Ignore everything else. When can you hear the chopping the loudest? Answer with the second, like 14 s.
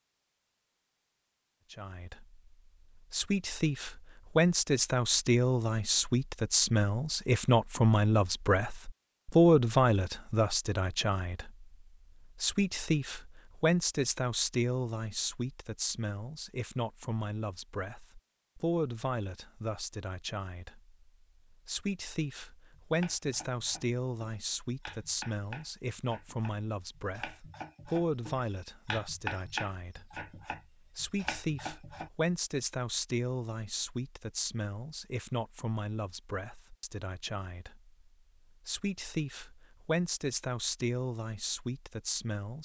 29 s.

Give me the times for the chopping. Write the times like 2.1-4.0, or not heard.
22.9-32.1.